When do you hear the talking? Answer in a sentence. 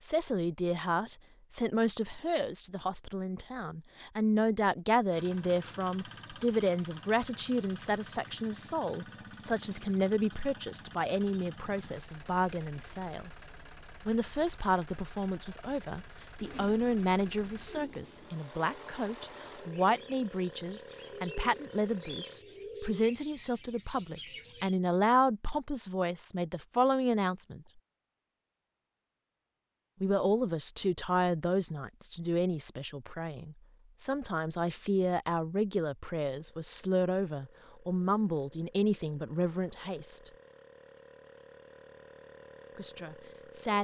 You can hear the talking from 0.0 to 13.3 s, from 14.1 to 27.6 s, from 30.0 to 40.3 s and from 42.8 to 43.7 s.